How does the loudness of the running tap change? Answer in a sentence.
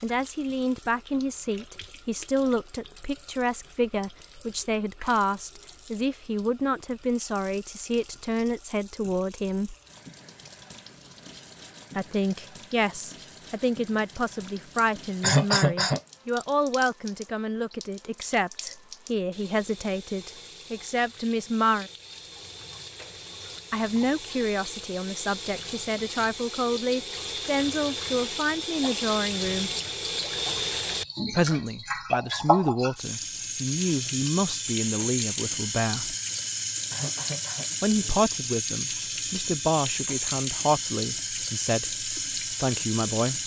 The loudness of the running tap goes up.